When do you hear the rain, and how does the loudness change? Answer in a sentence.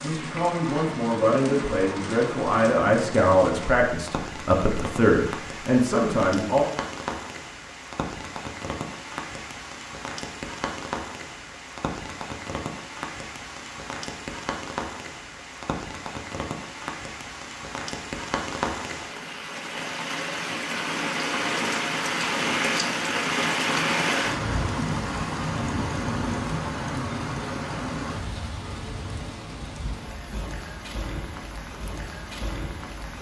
You can hear the rain from 0.0 to 33.1 s, getting louder then quieter.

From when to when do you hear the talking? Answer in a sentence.
The talking can be heard from 0.0 to 6.7 s.